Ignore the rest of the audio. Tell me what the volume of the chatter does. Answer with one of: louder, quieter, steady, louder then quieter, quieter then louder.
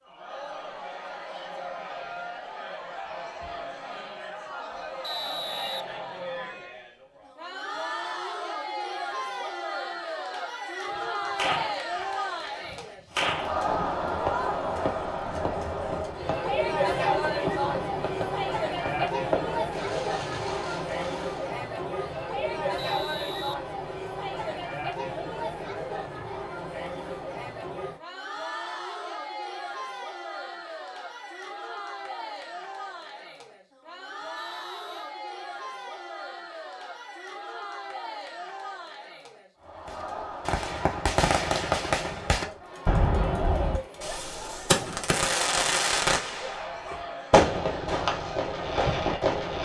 louder then quieter.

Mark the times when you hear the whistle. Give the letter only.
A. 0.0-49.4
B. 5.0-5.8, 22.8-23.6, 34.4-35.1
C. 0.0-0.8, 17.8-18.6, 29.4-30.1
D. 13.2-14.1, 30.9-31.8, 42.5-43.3
B.